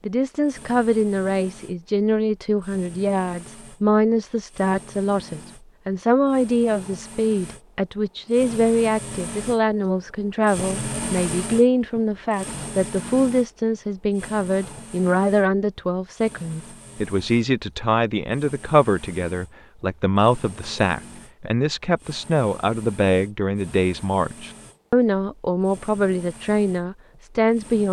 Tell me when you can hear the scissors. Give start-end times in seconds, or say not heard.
not heard.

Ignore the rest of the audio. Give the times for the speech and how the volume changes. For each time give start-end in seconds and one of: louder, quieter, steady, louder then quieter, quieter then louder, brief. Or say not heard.
0.0-27.8 steady.